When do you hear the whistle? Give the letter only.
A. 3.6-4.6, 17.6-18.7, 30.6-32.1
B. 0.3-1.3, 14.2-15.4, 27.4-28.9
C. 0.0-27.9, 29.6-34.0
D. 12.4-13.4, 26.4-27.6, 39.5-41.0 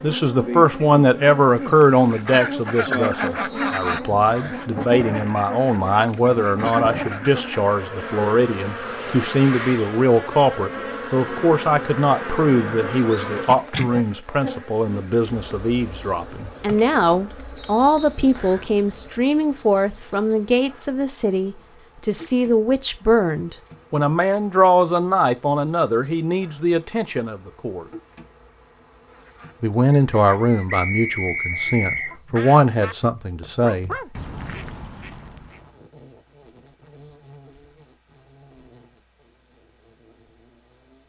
A.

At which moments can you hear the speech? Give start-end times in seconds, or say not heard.
0.0-27.9, 29.6-34.0.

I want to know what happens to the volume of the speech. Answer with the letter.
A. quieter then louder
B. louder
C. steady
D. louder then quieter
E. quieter
C.